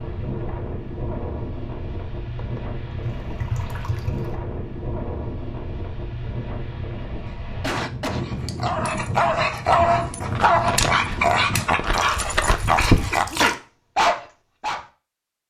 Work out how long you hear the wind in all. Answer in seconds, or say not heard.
12 s.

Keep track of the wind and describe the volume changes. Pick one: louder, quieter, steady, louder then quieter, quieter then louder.
steady.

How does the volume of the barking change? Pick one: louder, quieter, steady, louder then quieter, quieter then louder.
steady.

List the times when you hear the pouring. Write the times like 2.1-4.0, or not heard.
3.0-4.3, 11.9-13.6.